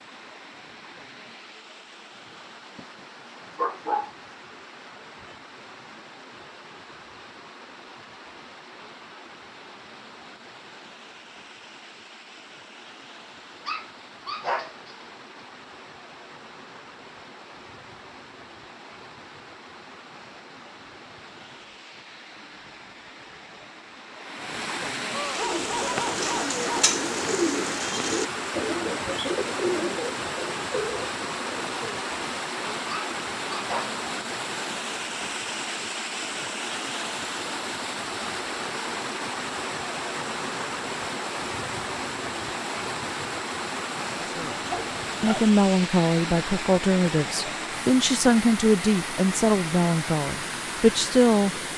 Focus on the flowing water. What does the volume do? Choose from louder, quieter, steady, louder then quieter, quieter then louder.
louder.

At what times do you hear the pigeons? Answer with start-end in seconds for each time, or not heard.
25.2-32.1.